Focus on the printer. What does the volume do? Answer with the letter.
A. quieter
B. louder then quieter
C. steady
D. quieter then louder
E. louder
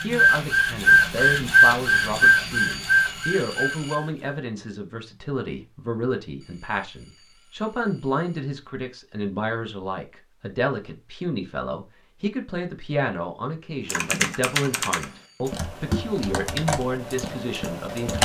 A.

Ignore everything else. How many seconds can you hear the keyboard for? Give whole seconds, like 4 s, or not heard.
4 s.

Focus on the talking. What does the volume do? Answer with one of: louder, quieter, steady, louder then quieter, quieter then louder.
steady.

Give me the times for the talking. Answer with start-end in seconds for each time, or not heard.
0.0-18.2.